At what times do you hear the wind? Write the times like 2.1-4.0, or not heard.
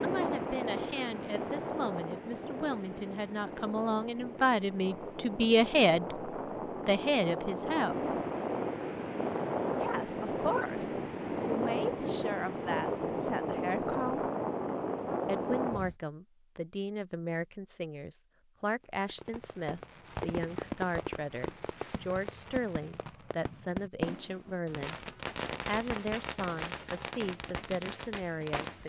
0.0-15.9.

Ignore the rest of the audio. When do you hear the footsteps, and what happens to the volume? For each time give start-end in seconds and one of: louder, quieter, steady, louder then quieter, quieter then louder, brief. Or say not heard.
not heard.